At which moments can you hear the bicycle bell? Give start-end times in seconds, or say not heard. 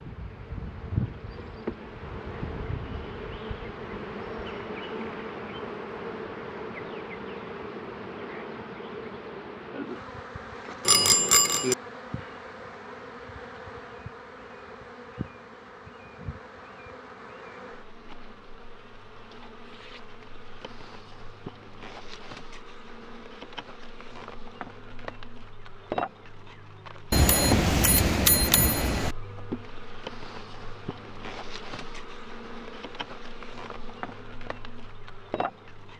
10.8-11.8, 27.1-29.1.